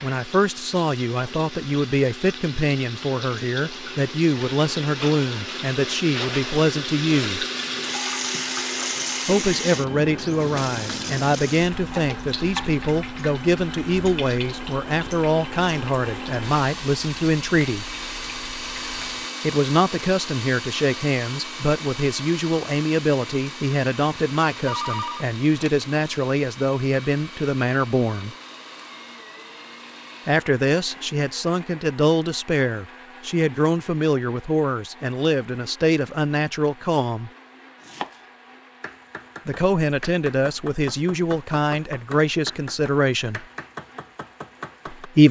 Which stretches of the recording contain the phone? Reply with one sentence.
The phone can be heard from 24.6 to 25.8 s.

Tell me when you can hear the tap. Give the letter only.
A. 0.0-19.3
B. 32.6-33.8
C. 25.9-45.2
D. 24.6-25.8
A.